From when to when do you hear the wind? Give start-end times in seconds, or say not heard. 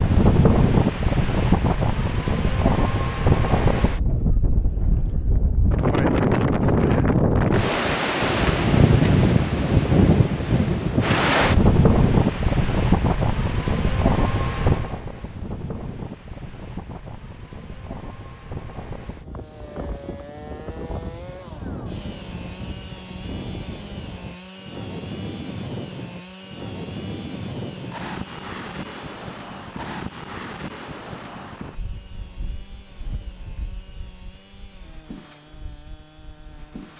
0.0-36.9.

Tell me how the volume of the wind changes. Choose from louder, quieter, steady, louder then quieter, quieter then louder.
quieter.